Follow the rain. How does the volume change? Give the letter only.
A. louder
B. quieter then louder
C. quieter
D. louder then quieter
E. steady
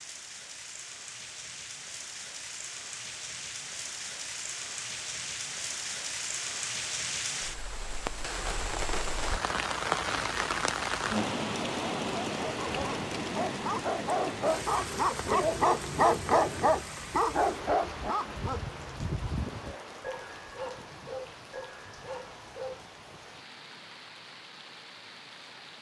D.